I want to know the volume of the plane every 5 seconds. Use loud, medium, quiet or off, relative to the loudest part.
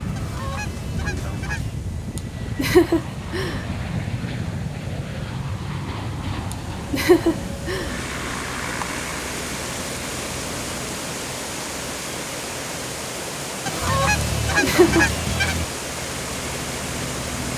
loud, loud, medium, loud.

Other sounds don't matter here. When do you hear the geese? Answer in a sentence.
You can hear the geese from 0.1 to 1.8 s and from 13.7 to 15.7 s.